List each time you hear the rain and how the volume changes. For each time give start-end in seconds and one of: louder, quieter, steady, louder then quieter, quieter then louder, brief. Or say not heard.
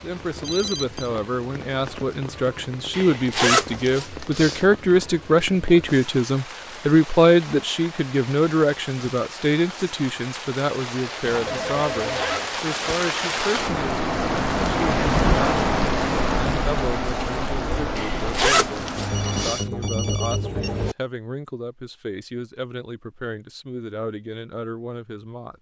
0.0-19.6 louder.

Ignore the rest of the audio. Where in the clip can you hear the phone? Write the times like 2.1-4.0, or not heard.
0.4-1.1, 11.2-12.5, 18.9-20.9.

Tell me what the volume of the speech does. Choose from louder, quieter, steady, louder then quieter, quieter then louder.
louder then quieter.